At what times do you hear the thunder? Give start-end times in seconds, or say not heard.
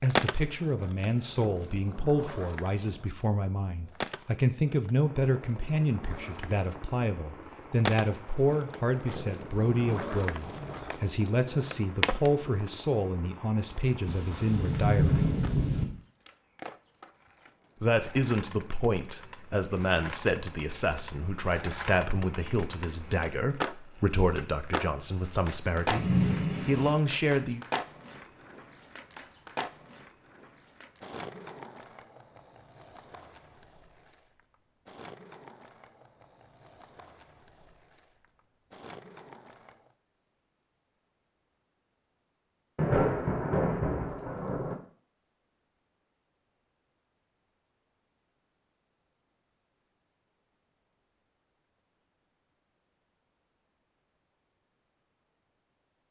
14.1-15.8, 25.9-26.9, 42.8-44.8.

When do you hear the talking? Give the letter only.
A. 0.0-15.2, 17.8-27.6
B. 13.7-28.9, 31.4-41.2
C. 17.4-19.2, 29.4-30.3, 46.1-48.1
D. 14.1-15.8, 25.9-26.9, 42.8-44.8
A.